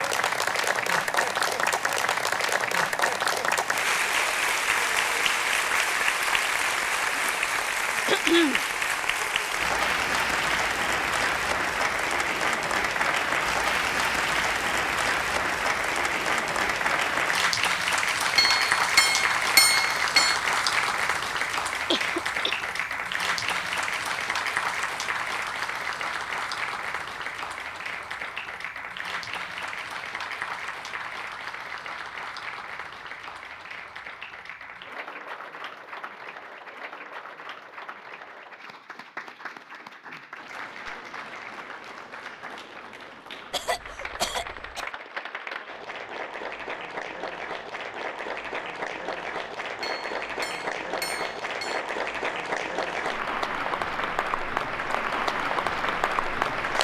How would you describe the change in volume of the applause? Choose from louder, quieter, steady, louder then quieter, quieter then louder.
quieter then louder.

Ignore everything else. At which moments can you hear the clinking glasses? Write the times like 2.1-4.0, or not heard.
18.4-20.4, 49.8-51.8.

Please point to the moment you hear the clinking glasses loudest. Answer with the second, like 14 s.
20 s.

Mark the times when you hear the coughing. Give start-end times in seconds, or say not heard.
8.1-8.6, 21.9-22.6, 43.5-44.9.